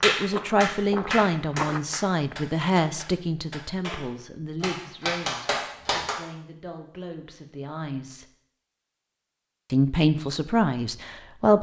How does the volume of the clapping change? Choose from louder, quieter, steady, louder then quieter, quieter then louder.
quieter then louder.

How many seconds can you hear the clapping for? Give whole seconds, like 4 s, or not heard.
6 s.